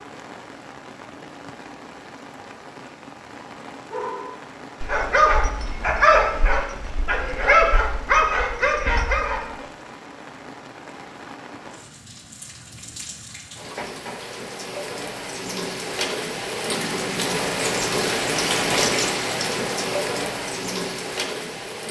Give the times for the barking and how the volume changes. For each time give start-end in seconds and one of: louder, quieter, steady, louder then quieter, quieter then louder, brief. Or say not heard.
3.9-9.4 quieter then louder.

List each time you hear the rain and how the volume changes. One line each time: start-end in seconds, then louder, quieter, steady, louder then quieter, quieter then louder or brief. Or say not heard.
0.0-21.8 louder.